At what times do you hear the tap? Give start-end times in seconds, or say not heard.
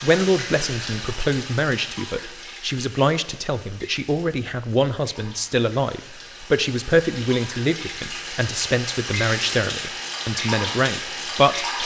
0.0-11.8.